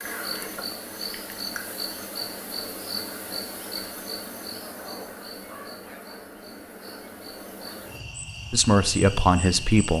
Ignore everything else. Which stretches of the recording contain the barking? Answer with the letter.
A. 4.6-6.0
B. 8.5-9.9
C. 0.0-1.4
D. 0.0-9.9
A.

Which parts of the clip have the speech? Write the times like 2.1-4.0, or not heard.
8.5-9.9.